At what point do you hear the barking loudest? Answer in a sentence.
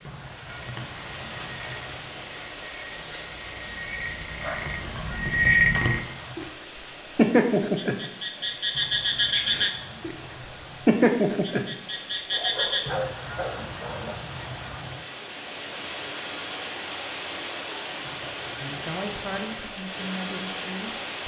The volume of the barking peaks at 13 seconds.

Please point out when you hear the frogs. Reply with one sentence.
You can hear the frogs from 0.0 to 6.5 s, from 7.2 to 10.2 s and from 10.8 to 12.8 s.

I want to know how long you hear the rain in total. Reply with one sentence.
You can hear the rain for 21 seconds altogether.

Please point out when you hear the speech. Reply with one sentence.
The speech can be heard from 18.6 to 21.2 s.